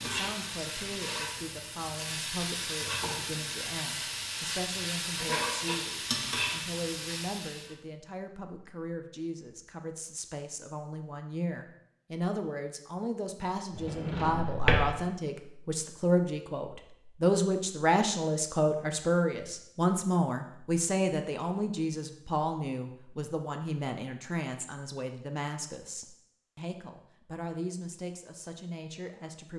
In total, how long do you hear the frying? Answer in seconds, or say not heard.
8 s.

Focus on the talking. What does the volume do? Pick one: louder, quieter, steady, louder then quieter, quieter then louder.
louder then quieter.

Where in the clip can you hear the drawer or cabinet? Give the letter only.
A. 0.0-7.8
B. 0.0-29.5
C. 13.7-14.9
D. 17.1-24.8
C.